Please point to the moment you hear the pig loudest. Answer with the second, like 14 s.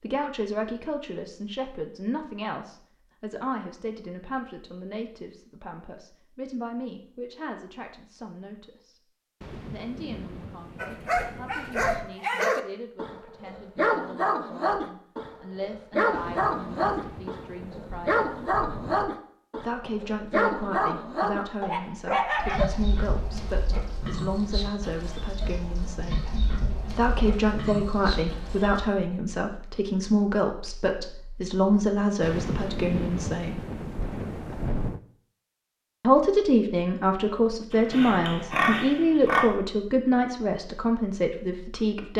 39 s.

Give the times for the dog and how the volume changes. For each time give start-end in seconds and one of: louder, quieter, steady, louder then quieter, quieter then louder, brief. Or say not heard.
10.8-22.6 steady.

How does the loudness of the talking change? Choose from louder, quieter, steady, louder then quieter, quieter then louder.
quieter then louder.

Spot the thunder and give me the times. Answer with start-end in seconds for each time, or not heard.
9.4-12.2, 16.1-19.1, 32.2-35.0.